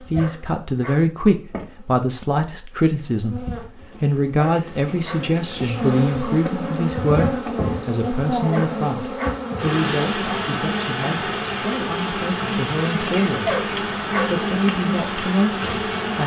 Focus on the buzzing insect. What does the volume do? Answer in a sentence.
The volume of the buzzing insect goes up.